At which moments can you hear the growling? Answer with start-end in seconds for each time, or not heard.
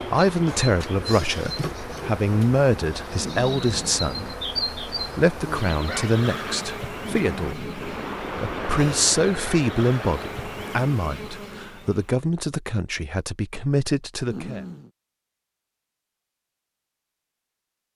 3.1-4.3, 7.0-8.2, 14.2-14.9.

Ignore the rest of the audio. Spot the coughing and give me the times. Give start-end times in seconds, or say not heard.
not heard.